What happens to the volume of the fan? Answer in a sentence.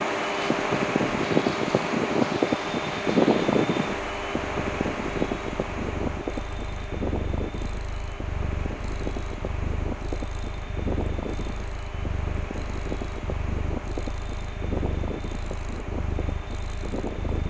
The volume of the fan goes down.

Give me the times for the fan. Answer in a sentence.
The fan can be heard from 0.0 to 17.4 s.